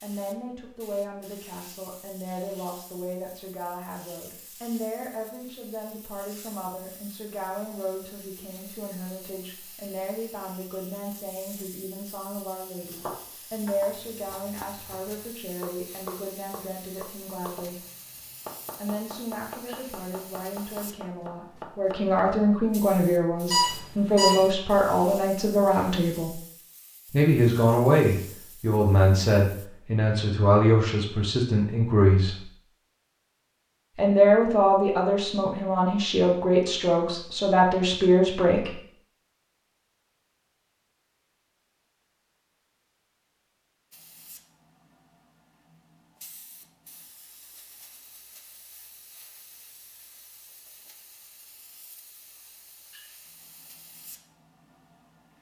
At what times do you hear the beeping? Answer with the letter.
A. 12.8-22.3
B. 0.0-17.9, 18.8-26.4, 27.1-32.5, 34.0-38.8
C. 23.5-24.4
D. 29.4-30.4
C.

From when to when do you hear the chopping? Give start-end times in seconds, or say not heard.
12.8-22.3.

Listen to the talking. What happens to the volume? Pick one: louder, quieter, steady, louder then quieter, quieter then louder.
louder.